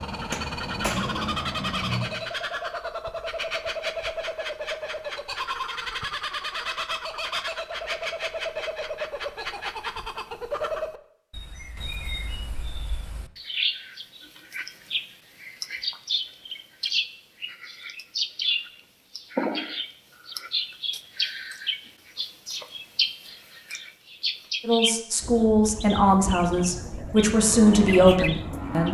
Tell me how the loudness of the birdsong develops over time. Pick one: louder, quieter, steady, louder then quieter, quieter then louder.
steady.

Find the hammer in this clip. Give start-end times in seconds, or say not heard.
0.0-2.2.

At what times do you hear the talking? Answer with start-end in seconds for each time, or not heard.
24.6-28.9.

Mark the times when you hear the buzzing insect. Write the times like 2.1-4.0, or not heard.
not heard.